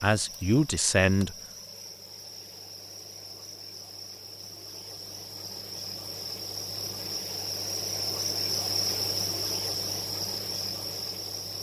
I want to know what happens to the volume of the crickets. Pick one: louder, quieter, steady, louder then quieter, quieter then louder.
louder.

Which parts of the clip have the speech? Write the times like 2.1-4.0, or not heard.
0.0-1.4.